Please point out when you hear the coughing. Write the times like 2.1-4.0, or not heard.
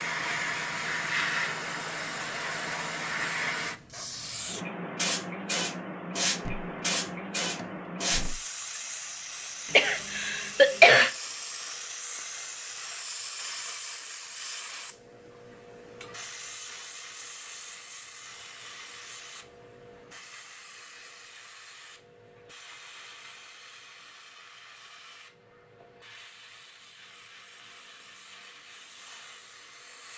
9.7-11.1.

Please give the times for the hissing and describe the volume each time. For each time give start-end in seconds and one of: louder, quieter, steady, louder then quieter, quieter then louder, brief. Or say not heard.
0.0-30.1 quieter.